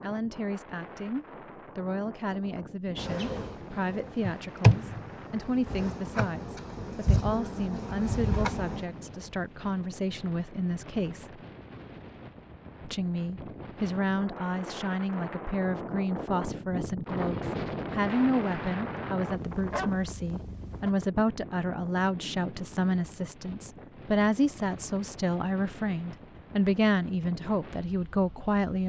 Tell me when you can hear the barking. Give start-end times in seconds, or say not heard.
19.3-20.9.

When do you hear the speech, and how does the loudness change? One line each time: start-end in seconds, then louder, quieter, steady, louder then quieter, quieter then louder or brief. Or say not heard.
0.0-11.4 steady
12.8-28.8 steady.